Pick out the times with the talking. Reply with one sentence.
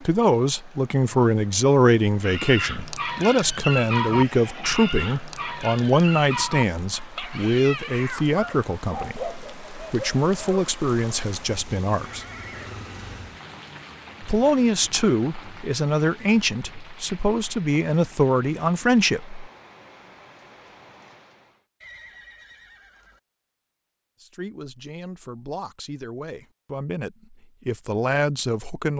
You can hear the talking from 0.0 to 12.2 s, from 14.2 to 19.4 s and from 24.2 to 28.9 s.